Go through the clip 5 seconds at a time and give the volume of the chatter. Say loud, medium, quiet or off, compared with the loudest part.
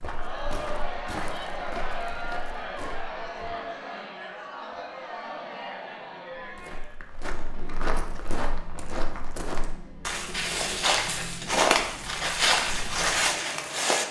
loud, medium, medium.